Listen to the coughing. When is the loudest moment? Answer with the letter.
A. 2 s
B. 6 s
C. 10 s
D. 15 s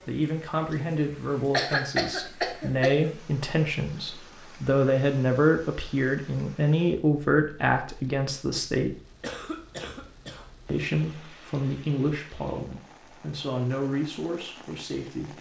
A.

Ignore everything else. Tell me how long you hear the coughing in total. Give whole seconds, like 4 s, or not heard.
3 s.